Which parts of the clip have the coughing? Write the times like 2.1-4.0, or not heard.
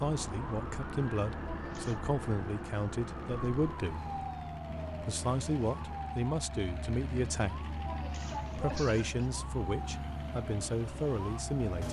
1.4-2.0, 7.7-9.2.